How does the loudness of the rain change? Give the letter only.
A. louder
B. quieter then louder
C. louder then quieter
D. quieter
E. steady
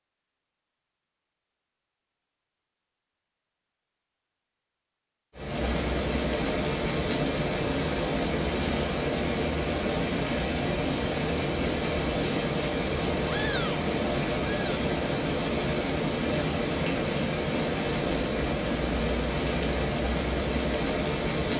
E.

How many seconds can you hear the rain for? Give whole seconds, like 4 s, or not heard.
16 s.